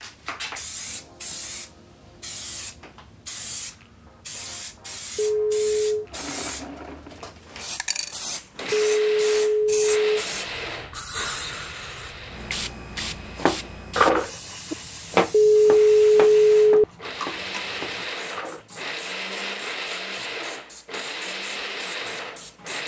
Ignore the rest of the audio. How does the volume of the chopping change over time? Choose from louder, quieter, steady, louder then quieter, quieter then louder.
quieter.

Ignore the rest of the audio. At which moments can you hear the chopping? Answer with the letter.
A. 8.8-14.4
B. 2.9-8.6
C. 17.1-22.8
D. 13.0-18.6
D.